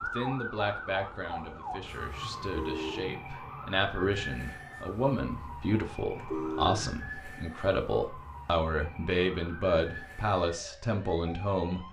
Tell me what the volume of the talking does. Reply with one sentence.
The loudness of the talking goes up.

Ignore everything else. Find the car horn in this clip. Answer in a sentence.
The car horn can be heard from 2.2 to 3.1 s and from 6.0 to 6.9 s.